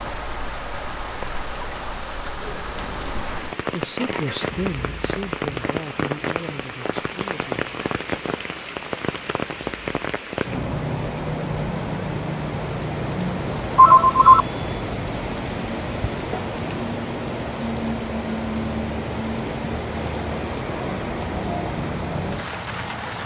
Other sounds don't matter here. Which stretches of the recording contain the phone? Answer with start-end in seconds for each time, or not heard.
13.2-14.4.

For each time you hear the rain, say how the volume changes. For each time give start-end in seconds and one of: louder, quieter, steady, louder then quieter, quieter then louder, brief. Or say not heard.
0.0-23.2 steady.